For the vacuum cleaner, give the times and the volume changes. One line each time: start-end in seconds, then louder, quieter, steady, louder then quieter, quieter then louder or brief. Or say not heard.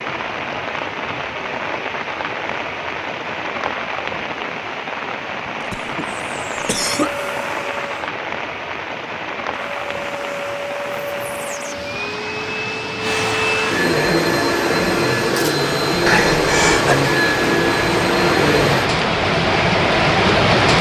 6.2-8.1 brief
9.5-18.9 louder.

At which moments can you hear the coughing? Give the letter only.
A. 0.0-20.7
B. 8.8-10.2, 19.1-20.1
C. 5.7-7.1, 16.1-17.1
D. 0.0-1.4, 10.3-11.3
C.